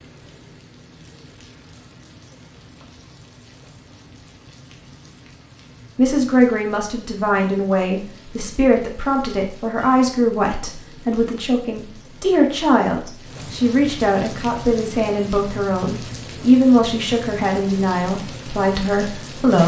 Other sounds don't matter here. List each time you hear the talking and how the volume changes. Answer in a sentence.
You can hear the talking from 6.0 to 19.6 s, at a steady volume.